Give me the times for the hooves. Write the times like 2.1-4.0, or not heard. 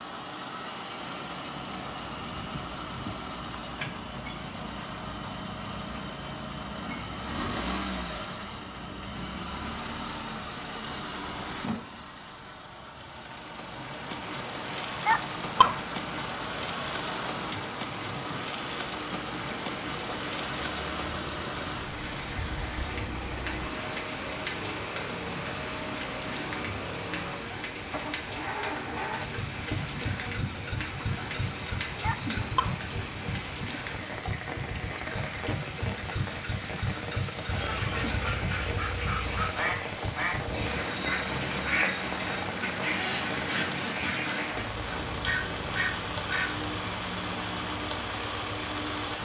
not heard.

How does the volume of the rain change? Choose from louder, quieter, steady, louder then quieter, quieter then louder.
steady.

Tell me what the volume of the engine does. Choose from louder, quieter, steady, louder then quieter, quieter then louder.
steady.